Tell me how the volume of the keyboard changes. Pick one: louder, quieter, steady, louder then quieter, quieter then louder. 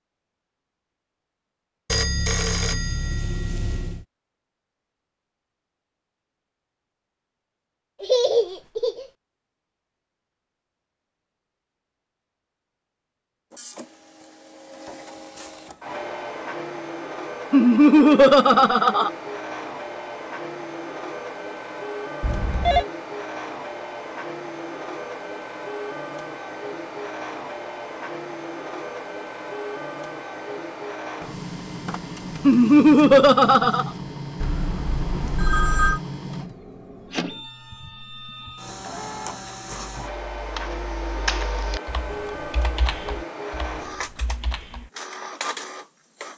quieter.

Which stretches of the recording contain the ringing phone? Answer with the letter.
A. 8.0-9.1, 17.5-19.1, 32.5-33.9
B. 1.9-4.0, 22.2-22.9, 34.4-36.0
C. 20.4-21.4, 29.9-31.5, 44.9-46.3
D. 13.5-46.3
B.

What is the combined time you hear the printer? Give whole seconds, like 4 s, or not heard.
33 s.